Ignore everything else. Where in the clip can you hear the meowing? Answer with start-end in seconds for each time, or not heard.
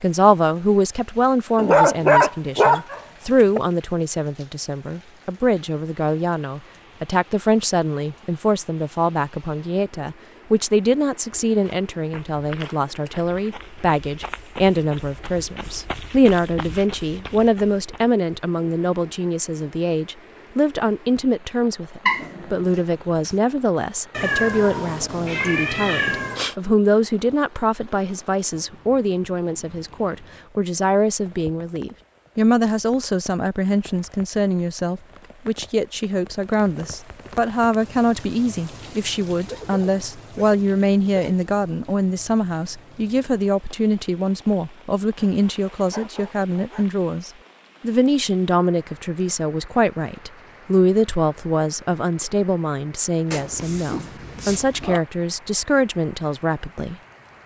24.1-26.6, 53.3-55.0.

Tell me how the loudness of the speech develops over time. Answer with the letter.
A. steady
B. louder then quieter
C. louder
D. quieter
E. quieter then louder
A.